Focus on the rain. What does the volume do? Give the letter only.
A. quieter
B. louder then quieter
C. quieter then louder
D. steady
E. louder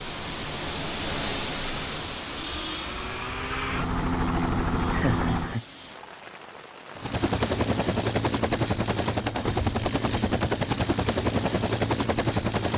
A.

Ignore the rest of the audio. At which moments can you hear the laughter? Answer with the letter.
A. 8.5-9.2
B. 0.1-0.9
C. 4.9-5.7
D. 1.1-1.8
C.